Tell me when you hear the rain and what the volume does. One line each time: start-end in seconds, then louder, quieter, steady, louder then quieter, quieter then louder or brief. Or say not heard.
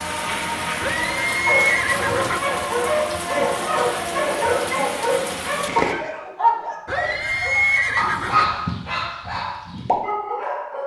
0.0-6.0 steady.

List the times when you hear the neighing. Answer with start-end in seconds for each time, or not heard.
0.8-2.4, 6.8-8.4.